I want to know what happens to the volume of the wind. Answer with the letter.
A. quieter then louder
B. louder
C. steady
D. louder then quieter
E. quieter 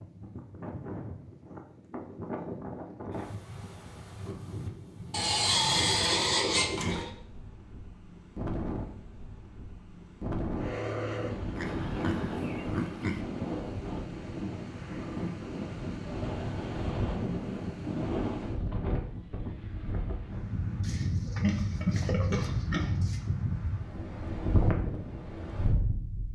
B.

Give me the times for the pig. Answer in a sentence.
The pig can be heard from 5.1 to 7.1 s, from 11.6 to 13.2 s and from 20.8 to 23.2 s.